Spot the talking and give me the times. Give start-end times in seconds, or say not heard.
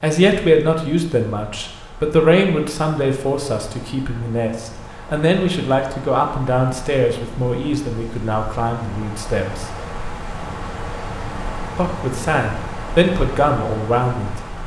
0.0-9.7, 11.8-14.6.